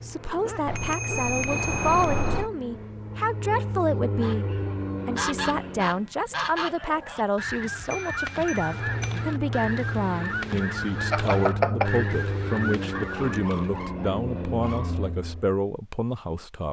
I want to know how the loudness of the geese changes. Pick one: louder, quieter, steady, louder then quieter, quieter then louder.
steady.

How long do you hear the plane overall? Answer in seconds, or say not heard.
13 s.